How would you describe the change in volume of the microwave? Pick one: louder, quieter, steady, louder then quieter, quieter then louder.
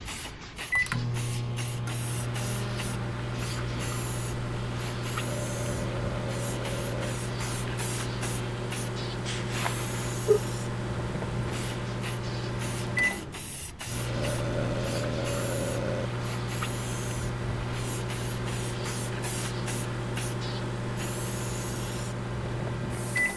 steady.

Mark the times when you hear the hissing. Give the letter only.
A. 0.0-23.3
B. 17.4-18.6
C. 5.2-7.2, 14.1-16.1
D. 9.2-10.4
A.